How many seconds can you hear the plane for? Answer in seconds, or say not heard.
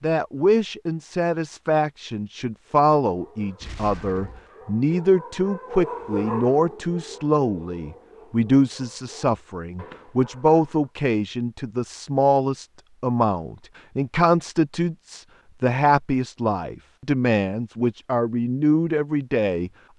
not heard.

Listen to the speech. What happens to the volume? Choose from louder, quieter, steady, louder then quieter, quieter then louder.
steady.